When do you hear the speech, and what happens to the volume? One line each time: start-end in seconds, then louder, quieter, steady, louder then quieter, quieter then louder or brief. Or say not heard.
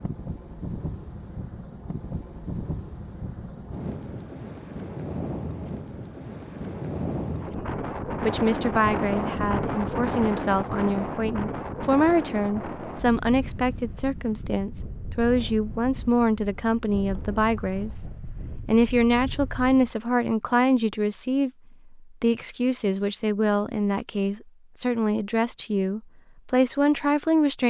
8.2-27.6 steady.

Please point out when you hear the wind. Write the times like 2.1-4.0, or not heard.
0.0-19.9.